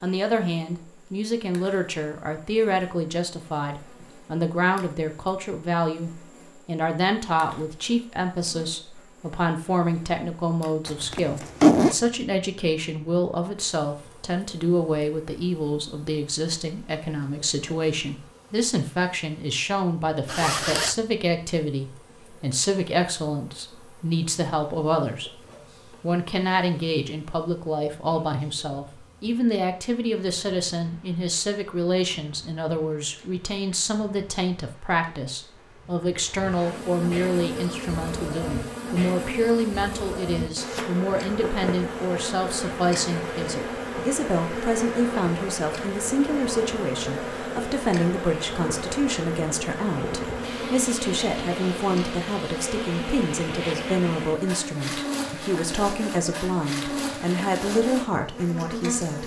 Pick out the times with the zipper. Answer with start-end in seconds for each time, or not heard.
10.8-11.9, 20.2-20.9, 53.5-53.9.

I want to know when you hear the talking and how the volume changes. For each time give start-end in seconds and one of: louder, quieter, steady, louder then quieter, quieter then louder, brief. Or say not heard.
0.0-25.4 steady
26.0-59.2 steady.